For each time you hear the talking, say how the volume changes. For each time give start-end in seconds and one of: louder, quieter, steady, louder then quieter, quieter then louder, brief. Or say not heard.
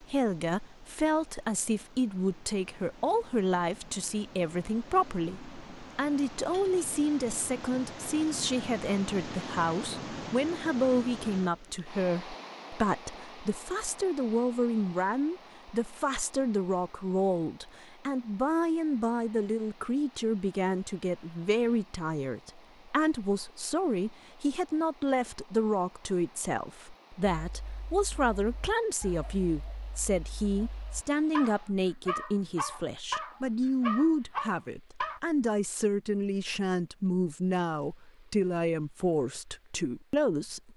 0.0-40.7 steady.